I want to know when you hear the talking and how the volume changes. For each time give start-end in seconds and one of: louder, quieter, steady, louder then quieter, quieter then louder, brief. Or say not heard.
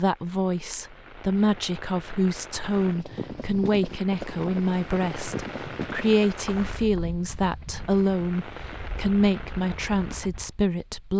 0.0-11.1 steady.